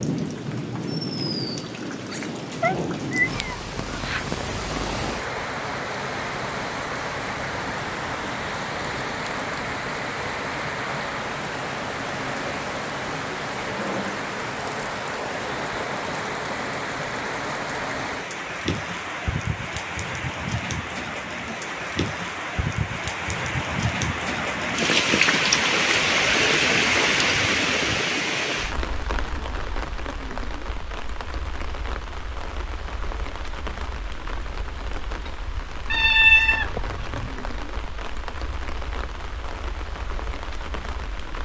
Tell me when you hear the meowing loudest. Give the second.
36 s.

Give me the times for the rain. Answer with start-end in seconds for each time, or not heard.
0.0-41.3.